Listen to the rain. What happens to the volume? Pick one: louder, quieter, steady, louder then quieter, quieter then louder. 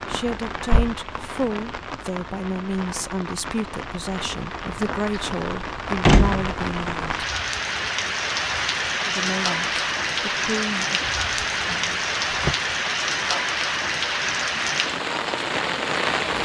louder.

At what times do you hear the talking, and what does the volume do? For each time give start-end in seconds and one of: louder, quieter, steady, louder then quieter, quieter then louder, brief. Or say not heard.
0.1-7.0 steady
9.1-11.0 brief.